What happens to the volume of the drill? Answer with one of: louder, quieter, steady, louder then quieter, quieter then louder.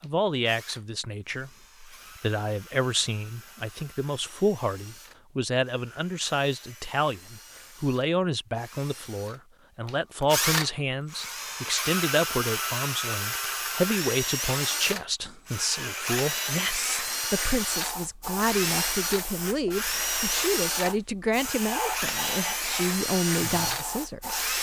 louder.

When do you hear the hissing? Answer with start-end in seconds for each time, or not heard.
17.6-24.5.